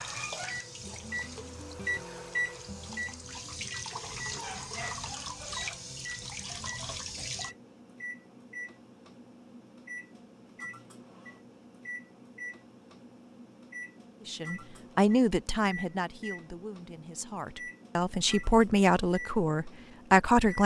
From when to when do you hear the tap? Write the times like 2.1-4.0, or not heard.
0.0-7.5.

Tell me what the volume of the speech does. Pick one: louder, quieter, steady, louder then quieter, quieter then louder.
quieter then louder.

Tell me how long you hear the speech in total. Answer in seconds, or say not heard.
6 s.